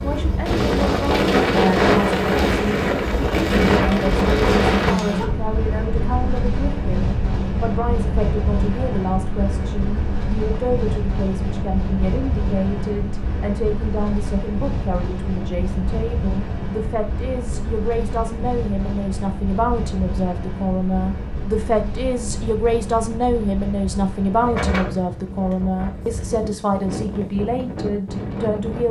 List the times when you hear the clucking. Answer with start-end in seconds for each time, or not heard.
not heard.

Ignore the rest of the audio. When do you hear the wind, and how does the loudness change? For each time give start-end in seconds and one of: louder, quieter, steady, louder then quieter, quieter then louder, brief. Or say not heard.
0.0-28.8 quieter.